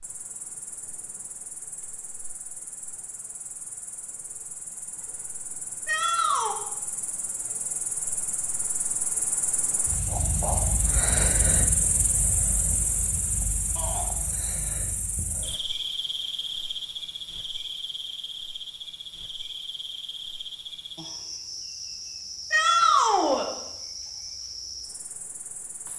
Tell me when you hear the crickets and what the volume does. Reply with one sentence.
You can hear the crickets from 0.0 to 25.9 s, getting louder then quieter.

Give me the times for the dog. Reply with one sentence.
You can't hear the dog here.